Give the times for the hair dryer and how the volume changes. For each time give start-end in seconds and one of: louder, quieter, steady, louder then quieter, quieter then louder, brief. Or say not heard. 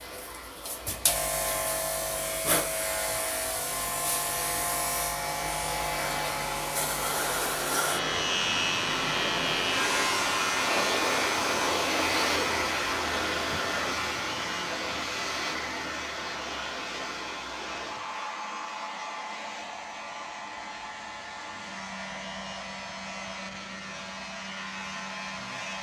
0.0-25.7 louder then quieter.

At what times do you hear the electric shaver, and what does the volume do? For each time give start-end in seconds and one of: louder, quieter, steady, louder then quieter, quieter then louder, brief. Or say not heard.
0.0-25.7 quieter.